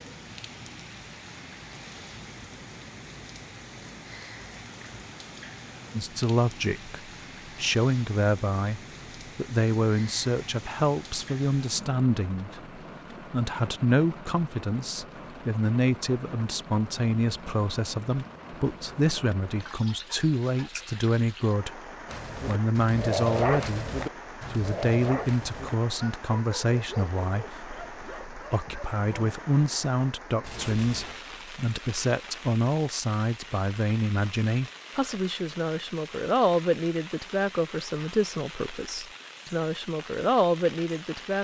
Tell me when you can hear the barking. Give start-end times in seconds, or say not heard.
22.1-29.4.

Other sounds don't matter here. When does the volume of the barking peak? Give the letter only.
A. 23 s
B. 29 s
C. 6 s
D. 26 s
A.